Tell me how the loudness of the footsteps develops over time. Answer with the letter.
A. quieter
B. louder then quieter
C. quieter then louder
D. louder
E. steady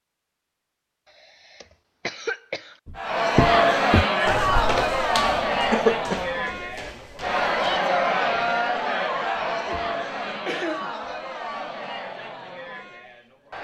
A.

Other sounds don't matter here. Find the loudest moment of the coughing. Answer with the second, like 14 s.
6 s.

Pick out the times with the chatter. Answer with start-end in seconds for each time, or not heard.
3.0-13.5.